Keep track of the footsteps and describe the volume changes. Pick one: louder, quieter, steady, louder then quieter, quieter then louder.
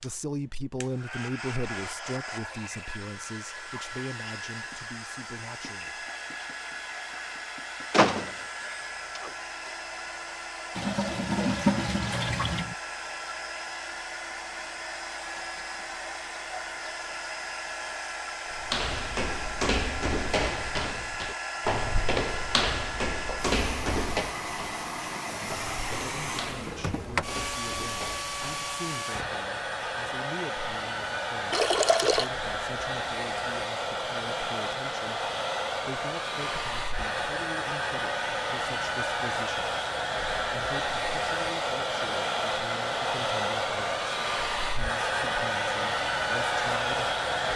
quieter.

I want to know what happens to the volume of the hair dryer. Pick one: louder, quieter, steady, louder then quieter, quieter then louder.
louder.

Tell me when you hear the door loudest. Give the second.
8 s.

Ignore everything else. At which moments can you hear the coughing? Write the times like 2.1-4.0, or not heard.
not heard.